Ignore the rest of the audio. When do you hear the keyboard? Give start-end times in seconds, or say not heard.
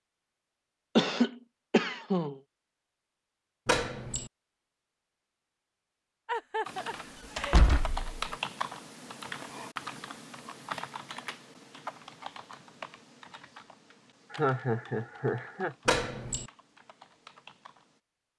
6.7-18.0.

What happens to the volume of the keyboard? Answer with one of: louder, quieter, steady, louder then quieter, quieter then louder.
quieter.